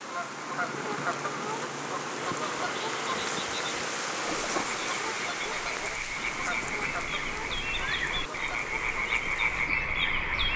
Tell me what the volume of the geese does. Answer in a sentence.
The volume of the geese goes down.